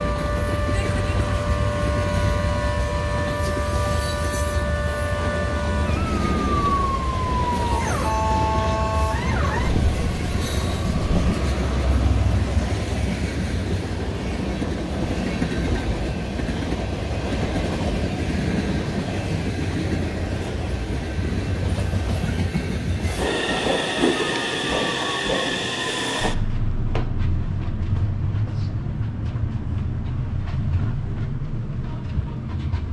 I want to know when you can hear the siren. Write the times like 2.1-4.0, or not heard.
0.0-11.3.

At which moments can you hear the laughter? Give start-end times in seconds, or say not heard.
not heard.